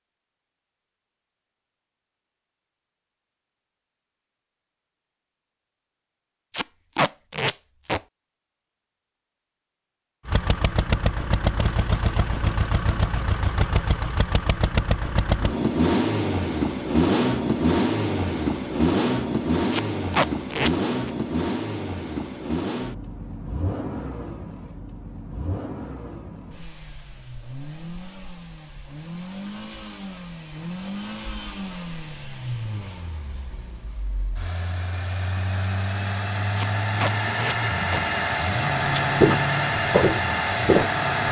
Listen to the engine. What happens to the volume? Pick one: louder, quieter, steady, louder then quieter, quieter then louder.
quieter then louder.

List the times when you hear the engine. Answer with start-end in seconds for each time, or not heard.
10.2-41.2.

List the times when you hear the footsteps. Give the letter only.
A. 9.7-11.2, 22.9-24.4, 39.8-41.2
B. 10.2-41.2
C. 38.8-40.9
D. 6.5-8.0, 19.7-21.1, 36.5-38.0
C.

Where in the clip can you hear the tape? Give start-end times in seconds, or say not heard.
6.5-8.0, 19.7-21.1, 36.5-38.0.